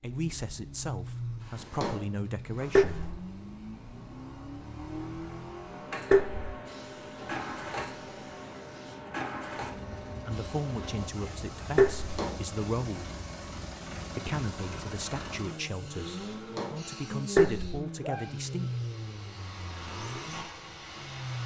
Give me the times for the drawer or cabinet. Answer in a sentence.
The drawer or cabinet can be heard from 1.4 to 3.1 s, from 11.9 to 12.5 s and from 16.2 to 16.9 s.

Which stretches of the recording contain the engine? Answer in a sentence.
You can hear the engine from 0.0 to 21.4 s.